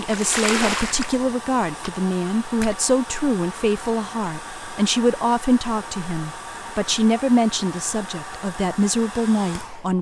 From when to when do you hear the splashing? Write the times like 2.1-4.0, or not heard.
0.0-2.8.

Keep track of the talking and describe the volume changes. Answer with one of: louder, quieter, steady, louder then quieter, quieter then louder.
steady.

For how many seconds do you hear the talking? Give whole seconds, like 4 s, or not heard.
10 s.